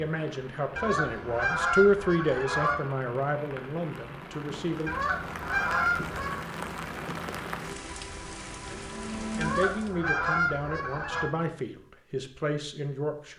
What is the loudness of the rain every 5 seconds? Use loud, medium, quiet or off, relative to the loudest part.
medium, loud, off.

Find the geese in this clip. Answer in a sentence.
The geese can be heard from 0.8 to 2.8 s, from 4.8 to 6.3 s and from 9.4 to 11.3 s.